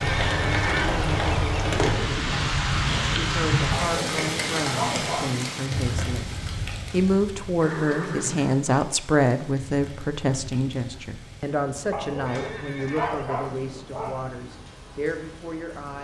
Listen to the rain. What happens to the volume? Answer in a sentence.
The loudness of the rain goes down.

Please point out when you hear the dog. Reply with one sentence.
You can hear the dog from 3.7 to 5.5 s and from 11.9 to 14.3 s.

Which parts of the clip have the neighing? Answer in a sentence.
You can hear the neighing from 0.0 to 1.8 s, from 7.6 to 8.8 s and from 12.2 to 13.3 s.